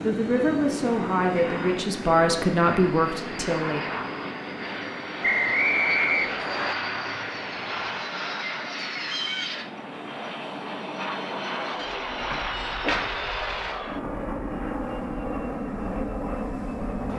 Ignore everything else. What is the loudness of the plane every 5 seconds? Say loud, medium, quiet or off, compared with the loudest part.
medium, loud, loud, loud.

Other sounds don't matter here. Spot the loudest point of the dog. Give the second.
13 s.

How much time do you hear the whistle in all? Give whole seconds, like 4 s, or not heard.
2 s.